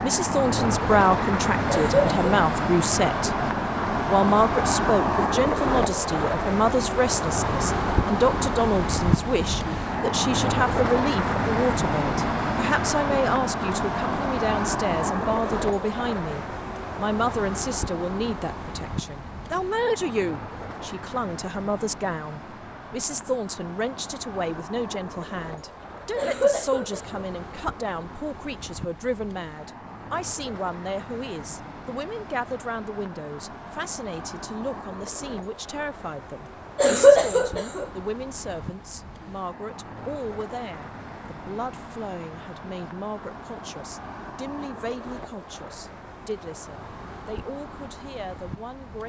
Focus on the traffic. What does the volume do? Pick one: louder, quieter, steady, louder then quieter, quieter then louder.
quieter.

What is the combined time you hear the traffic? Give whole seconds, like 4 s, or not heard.
49 s.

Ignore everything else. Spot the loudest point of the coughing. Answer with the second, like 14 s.
37 s.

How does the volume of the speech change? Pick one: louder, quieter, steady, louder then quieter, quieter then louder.
quieter.